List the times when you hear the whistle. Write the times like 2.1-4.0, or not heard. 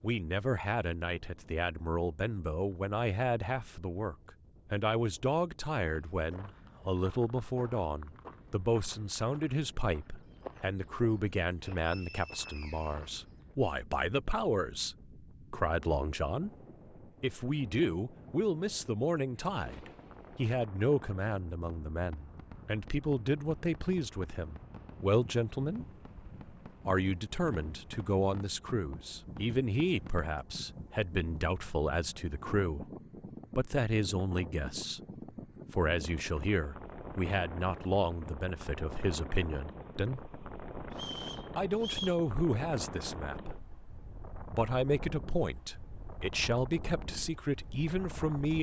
11.8-13.2, 40.9-42.2.